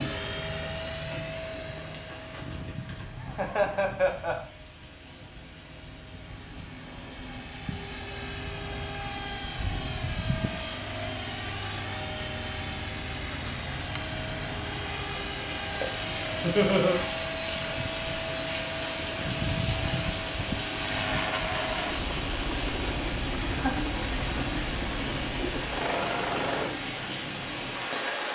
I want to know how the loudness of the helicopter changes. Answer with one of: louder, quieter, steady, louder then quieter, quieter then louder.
louder.